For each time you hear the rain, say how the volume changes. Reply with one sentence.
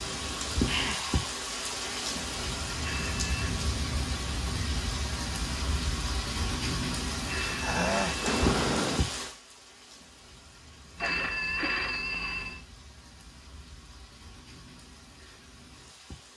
You can hear the rain from 0.0 to 16.3 s, getting quieter.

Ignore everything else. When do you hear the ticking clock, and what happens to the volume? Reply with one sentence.
You can't hear the ticking clock here.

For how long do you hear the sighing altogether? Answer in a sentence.
You can hear the sighing for 3 seconds altogether.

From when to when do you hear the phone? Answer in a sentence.
You can hear the phone from 2.8 to 3.5 s, from 7.2 to 8.3 s and from 10.9 to 12.6 s.